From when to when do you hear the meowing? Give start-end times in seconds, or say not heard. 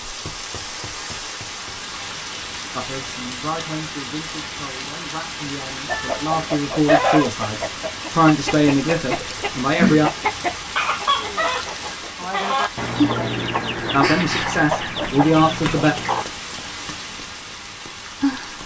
5.9-6.5.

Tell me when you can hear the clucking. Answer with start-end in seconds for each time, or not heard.
5.8-16.2.